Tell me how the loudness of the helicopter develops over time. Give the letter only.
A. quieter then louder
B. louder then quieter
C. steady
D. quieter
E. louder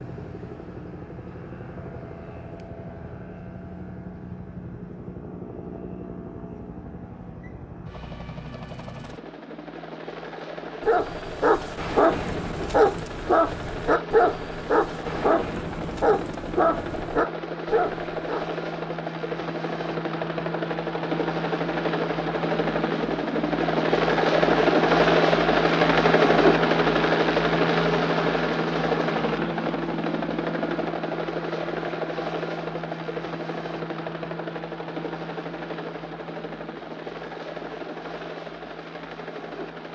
B.